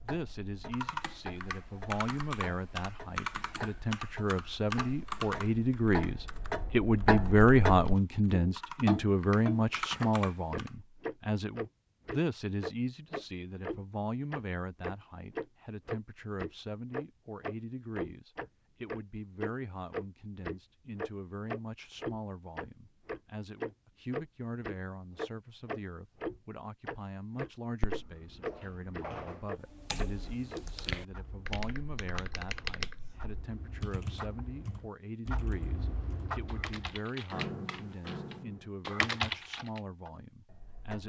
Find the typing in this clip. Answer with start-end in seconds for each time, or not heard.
0.7-10.7, 29.6-39.8.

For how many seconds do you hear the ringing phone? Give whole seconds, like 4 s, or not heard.
2 s.